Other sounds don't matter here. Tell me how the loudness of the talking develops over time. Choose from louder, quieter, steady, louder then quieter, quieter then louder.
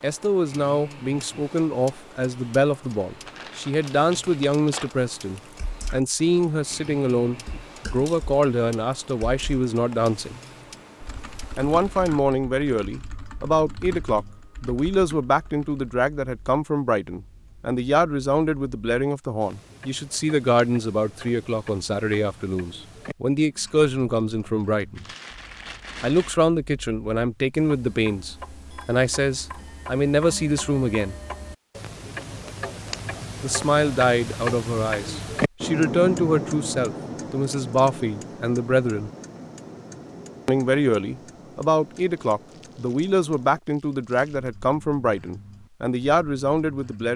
steady.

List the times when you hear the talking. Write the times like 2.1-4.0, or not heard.
0.0-10.3, 11.6-25.1, 26.0-31.1, 33.4-39.1, 40.5-47.1.